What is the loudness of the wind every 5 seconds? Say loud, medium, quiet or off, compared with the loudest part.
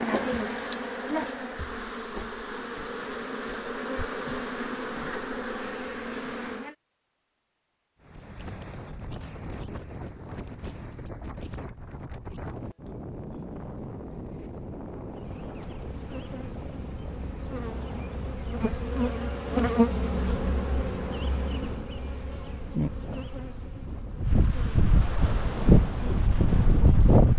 off, quiet, quiet, quiet, medium, loud.